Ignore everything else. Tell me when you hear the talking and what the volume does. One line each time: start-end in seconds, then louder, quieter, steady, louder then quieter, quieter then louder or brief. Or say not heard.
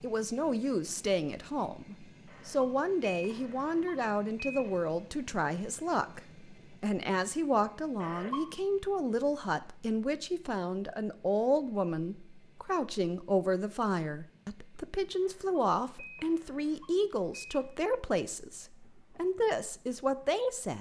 0.0-20.7 steady.